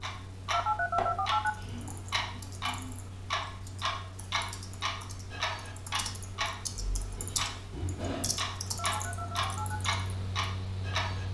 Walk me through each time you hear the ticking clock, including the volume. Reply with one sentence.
You can hear the ticking clock from 0.0 to 11.3 s, at a steady volume.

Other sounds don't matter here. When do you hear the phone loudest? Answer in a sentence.
The loudest moment of the phone is at 1 second.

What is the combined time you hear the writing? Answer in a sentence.
The writing can't be heard in this clip.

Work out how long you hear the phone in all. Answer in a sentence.
The phone can be heard for 2 seconds in total.